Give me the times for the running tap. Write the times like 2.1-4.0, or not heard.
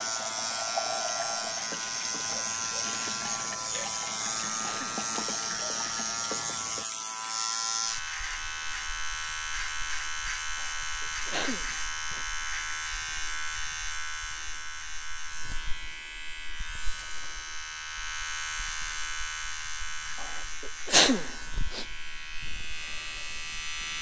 0.0-6.8.